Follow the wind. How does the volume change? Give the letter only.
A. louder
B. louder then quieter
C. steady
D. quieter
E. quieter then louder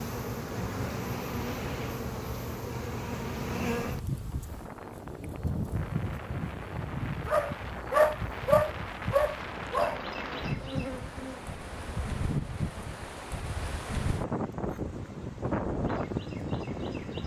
A.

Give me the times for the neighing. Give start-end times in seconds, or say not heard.
not heard.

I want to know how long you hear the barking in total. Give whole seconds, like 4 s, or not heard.
3 s.